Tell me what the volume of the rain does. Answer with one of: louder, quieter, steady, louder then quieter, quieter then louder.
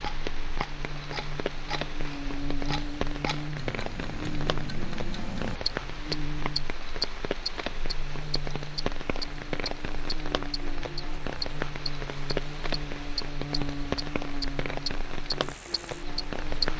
steady.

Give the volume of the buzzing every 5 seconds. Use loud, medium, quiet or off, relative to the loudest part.
loud, loud, loud, medium.